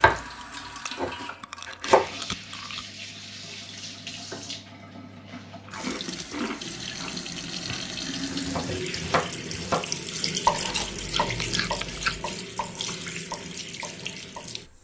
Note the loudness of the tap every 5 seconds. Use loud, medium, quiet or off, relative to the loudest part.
medium, loud, loud.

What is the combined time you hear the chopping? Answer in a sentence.
You can hear the chopping for 8 seconds altogether.